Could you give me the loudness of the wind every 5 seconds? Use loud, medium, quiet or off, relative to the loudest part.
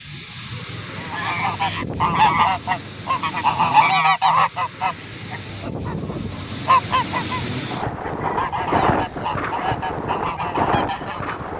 medium, loud, loud.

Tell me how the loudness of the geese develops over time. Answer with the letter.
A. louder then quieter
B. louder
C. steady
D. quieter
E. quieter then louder
D.